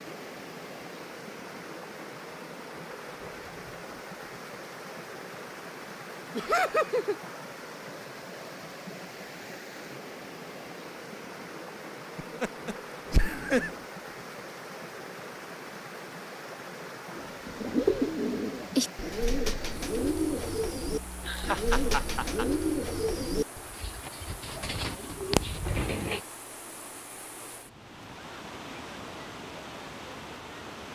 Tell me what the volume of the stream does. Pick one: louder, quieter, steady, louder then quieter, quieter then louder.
steady.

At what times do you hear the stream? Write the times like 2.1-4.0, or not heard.
0.0-30.9.